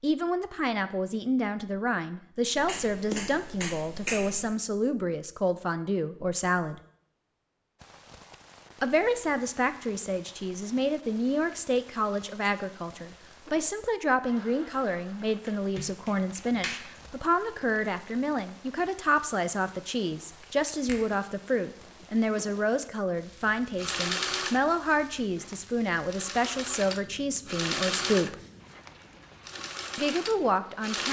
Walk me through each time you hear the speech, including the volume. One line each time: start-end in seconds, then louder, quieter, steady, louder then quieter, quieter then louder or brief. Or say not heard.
0.0-6.8 steady
8.8-28.4 steady
29.9-31.0 brief.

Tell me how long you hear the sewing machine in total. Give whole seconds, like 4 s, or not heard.
7 s.